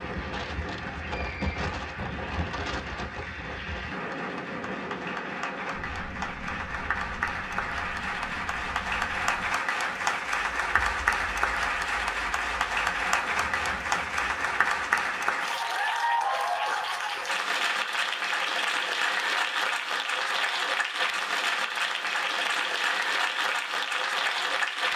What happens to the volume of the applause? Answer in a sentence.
The volume of the applause goes up.